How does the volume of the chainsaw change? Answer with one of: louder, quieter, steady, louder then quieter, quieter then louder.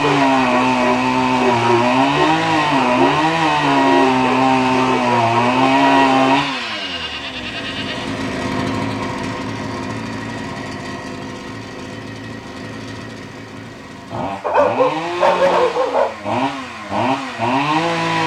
quieter then louder.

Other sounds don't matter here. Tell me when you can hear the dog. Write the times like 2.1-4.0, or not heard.
0.0-6.5, 14.4-16.1.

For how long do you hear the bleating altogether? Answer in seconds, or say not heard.
2 s.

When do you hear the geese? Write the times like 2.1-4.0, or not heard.
not heard.